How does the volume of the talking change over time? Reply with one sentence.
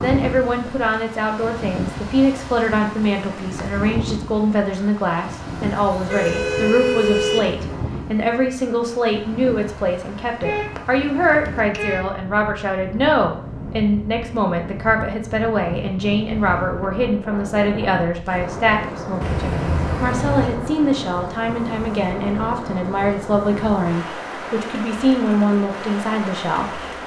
The loudness of the talking stays about the same.